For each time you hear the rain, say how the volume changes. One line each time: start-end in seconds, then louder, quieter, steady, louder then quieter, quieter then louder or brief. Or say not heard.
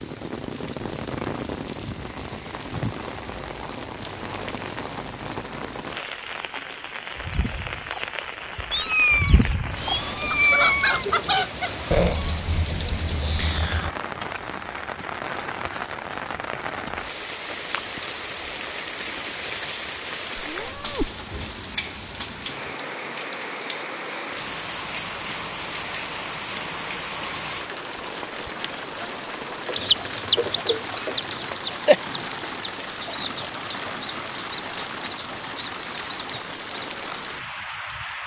0.0-38.2 steady.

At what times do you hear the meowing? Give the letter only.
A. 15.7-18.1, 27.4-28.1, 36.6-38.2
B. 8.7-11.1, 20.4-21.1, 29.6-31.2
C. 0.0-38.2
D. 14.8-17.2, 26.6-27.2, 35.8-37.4
B.